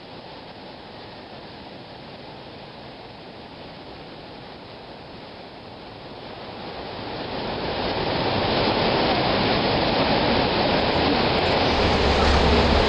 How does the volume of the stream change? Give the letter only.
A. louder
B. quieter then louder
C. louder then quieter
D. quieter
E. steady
A.